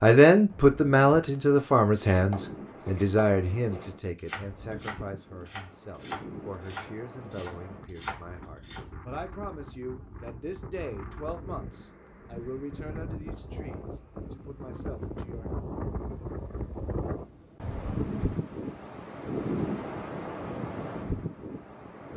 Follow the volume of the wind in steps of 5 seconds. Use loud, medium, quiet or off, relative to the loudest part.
medium, medium, medium, loud, loud.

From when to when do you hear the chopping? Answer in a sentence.
You can hear the chopping from 2.0 to 8.9 s.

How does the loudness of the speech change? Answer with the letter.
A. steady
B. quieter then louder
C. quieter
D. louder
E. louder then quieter
C.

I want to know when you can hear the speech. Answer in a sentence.
The speech can be heard from 0.0 to 15.5 s.